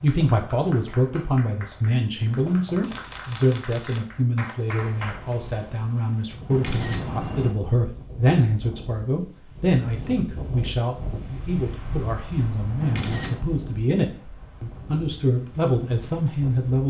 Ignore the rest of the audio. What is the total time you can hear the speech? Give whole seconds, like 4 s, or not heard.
17 s.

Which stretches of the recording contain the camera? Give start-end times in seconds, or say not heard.
2.8-4.0, 6.5-7.5, 12.8-13.4.